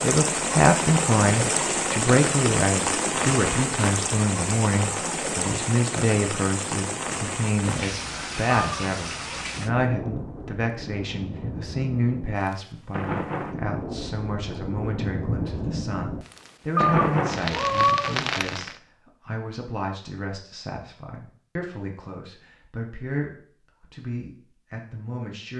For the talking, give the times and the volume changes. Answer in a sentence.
The talking can be heard from 0.0 to 25.5 s, getting quieter.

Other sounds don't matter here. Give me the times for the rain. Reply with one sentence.
The rain can be heard from 0.0 to 18.8 s.